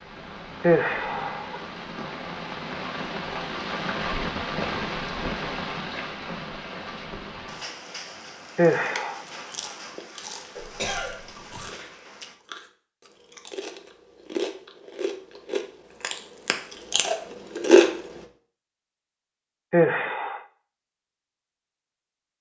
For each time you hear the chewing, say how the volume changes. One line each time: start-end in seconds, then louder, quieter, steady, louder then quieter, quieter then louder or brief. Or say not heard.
8.8-18.2 louder.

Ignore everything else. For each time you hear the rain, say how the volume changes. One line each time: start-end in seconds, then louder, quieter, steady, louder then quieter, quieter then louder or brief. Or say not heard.
0.0-12.3 louder then quieter.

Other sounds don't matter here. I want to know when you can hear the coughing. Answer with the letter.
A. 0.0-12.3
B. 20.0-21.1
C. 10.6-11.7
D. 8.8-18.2
C.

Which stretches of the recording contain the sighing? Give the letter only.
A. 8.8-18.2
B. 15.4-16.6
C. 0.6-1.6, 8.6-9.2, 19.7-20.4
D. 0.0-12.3
C.